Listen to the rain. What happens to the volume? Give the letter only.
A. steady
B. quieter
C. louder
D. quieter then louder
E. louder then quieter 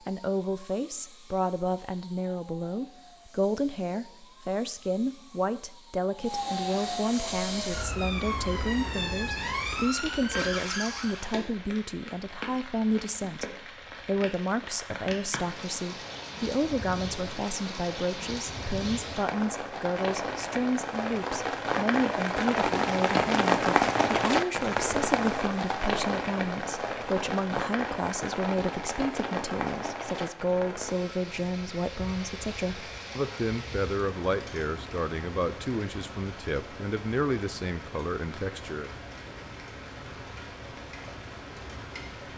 E.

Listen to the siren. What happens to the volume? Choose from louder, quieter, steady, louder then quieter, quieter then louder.
louder.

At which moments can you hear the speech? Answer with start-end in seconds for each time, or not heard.
0.1-38.9.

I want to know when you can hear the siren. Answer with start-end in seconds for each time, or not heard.
0.0-11.4.